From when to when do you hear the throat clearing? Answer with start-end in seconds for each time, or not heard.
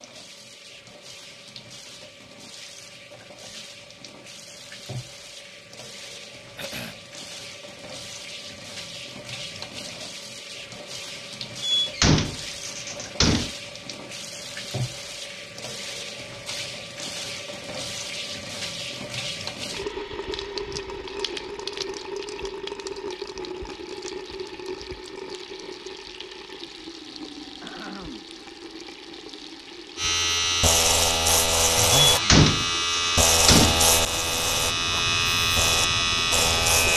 6.5-7.0, 27.4-28.2.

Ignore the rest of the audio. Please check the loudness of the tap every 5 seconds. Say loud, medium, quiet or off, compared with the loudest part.
medium, medium, loud, loud, loud, medium, medium, off.